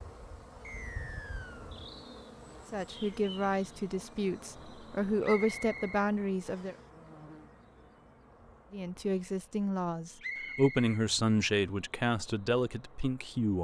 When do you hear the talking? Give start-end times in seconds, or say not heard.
2.7-6.8, 8.7-13.6.